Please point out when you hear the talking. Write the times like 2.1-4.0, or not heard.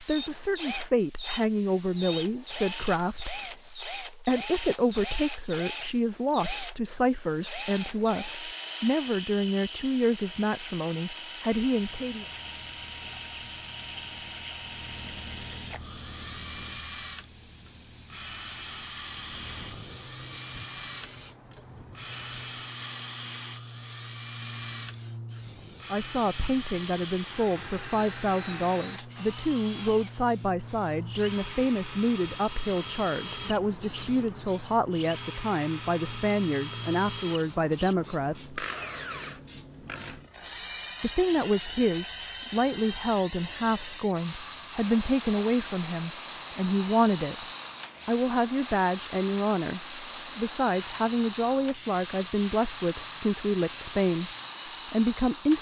0.0-12.2, 25.9-38.5, 41.0-47.5, 48.0-54.3, 54.9-55.5.